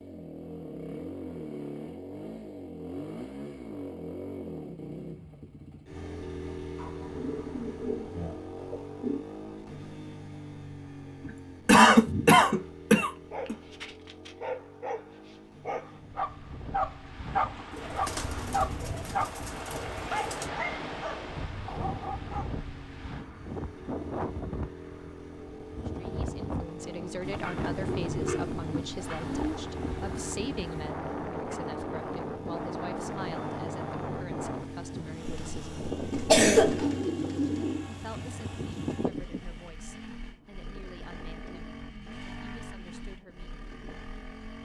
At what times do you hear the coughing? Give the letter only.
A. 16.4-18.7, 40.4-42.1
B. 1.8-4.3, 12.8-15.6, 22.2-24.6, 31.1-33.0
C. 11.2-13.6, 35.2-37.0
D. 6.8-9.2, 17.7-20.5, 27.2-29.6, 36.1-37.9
C.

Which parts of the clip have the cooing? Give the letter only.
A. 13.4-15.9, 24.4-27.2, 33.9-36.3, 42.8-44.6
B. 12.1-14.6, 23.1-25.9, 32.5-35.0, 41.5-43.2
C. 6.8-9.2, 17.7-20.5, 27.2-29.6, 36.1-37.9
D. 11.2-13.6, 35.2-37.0
C.